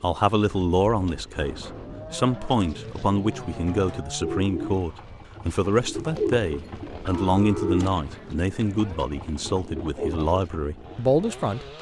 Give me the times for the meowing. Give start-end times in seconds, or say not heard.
not heard.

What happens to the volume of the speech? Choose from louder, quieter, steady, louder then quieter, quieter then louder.
steady.